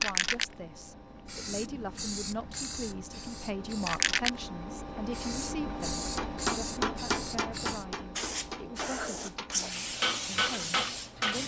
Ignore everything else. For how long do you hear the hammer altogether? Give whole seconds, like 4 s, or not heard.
5 s.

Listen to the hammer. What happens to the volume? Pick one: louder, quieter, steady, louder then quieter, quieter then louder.
quieter then louder.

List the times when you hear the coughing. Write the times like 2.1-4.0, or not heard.
not heard.